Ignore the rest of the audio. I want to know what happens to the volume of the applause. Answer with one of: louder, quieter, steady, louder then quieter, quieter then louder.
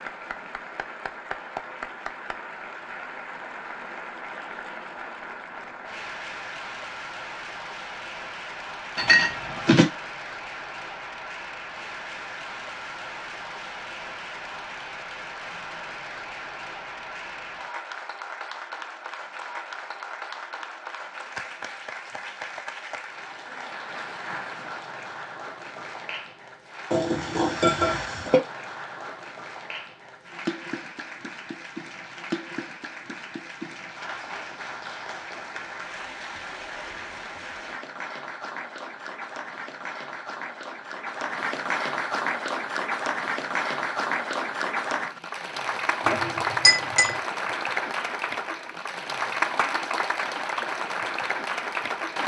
louder.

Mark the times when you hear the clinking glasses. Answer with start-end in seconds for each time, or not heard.
8.9-9.8, 26.9-28.4, 46.0-47.1.